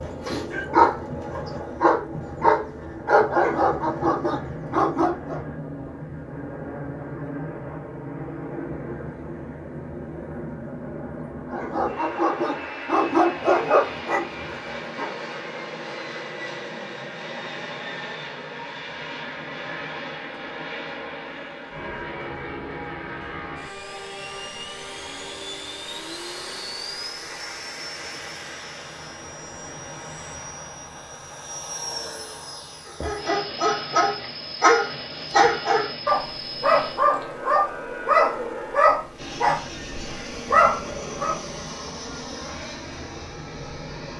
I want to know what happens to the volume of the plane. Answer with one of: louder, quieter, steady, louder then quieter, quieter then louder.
steady.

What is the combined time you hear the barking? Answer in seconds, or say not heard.
17 s.